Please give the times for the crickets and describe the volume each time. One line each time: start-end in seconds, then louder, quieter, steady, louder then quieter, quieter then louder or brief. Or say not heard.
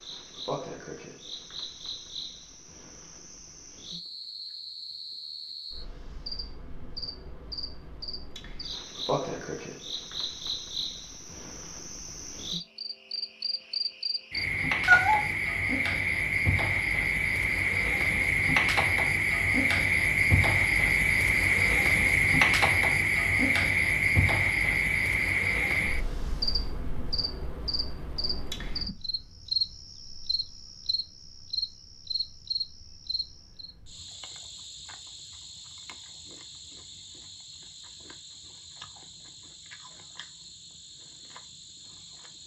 0.0-42.4 louder then quieter.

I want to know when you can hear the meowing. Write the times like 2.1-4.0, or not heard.
14.8-15.2.